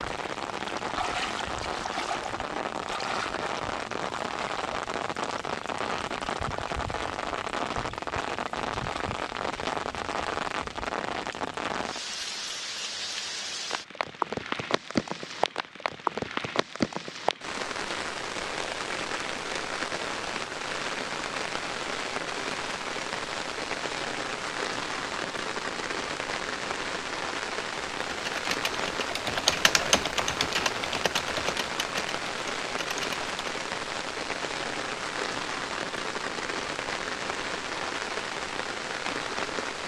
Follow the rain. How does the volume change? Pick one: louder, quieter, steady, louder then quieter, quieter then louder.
steady.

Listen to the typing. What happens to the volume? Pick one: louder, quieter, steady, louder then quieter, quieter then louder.
louder then quieter.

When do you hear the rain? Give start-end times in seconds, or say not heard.
0.0-39.8.